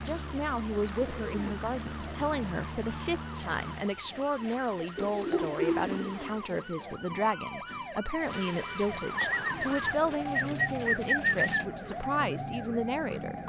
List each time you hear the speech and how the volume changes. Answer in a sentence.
You can hear the speech from 0.1 to 13.4 s, at a steady volume.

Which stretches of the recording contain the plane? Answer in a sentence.
You can hear the plane from 0.0 to 3.9 s.